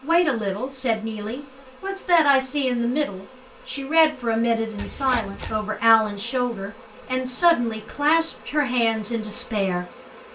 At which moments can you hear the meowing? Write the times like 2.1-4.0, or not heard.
4.8-5.7.